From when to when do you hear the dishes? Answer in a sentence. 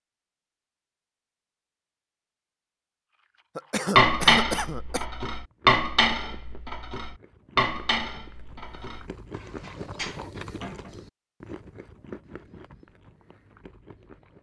You can hear the dishes from 4.0 to 10.9 s.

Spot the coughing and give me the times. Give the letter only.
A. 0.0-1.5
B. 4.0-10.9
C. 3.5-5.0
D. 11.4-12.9
C.